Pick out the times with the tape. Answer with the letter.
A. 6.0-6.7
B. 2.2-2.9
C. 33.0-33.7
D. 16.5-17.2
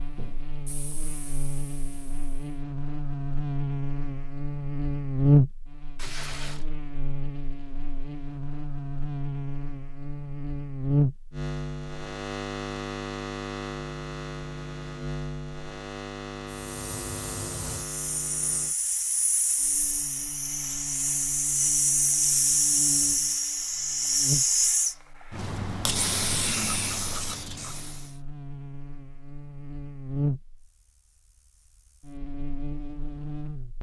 A.